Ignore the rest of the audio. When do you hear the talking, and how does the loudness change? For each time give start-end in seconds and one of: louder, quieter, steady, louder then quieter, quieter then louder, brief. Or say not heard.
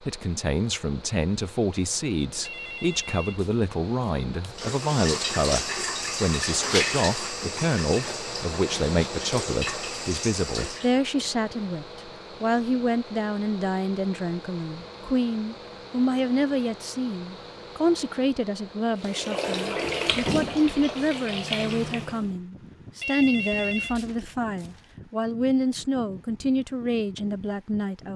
0.1-28.1 steady.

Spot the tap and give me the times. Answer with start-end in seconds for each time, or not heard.
4.5-10.9, 19.0-22.3.